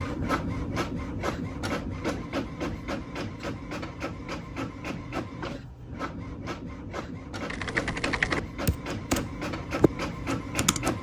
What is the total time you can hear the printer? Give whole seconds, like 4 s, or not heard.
11 s.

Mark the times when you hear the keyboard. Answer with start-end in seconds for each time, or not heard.
7.5-10.9.